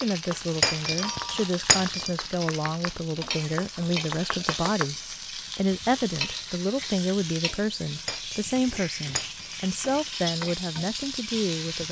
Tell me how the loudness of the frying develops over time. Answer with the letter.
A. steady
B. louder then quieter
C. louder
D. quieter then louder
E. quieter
A.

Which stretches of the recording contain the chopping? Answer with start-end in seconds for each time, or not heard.
0.0-4.8.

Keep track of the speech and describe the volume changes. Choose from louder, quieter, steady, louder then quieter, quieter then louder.
steady.